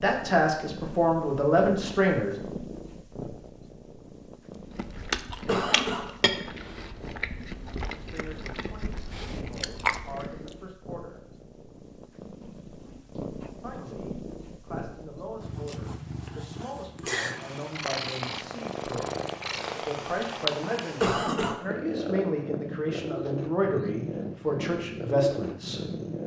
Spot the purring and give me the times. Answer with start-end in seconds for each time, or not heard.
0.0-26.2.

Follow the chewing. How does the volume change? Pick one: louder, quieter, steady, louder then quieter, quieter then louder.
quieter.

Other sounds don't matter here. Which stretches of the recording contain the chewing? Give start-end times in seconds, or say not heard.
4.8-10.2.